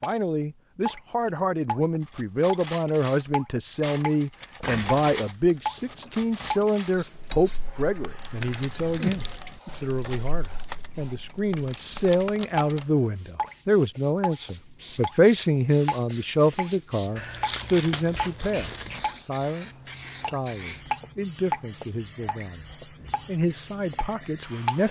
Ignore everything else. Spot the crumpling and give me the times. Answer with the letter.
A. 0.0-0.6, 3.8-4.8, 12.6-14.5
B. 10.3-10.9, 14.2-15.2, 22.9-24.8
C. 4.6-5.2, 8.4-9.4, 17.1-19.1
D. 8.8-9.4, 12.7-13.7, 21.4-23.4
C.